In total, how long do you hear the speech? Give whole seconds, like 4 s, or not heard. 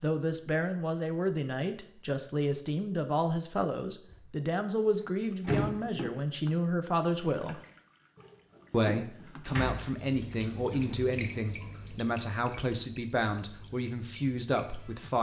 14 s.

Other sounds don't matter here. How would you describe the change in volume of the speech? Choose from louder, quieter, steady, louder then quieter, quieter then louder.
steady.